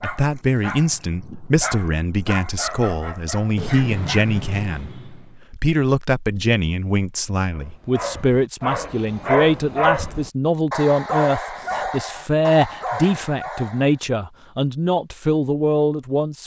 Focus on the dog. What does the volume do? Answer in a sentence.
The loudness of the dog goes up, then down.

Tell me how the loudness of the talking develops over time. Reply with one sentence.
The volume of the talking stays about the same.